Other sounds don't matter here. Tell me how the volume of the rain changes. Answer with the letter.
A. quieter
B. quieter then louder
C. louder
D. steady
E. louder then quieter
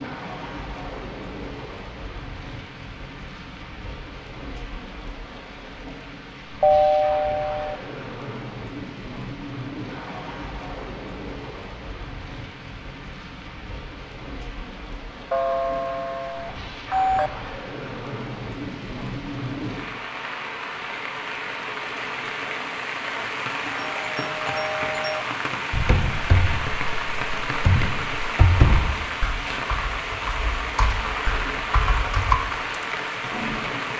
C.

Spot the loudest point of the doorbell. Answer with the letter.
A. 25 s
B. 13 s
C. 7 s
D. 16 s
C.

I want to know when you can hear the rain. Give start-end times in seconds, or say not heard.
0.0-33.9.